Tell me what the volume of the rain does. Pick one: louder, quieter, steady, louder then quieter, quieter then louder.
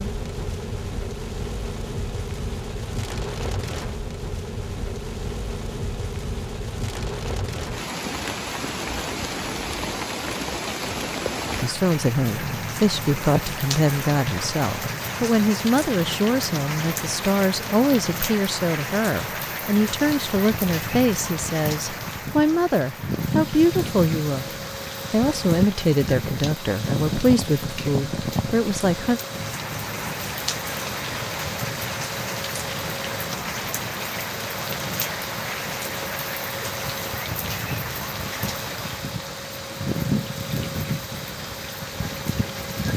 steady.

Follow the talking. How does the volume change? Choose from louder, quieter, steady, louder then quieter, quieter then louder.
steady.